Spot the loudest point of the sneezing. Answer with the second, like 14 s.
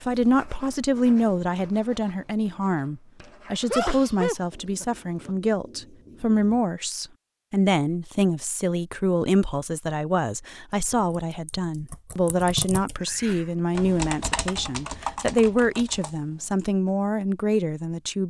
4 s.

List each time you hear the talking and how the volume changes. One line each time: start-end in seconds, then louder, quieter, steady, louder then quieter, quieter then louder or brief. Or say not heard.
0.1-18.2 steady.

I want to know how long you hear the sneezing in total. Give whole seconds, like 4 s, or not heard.
2 s.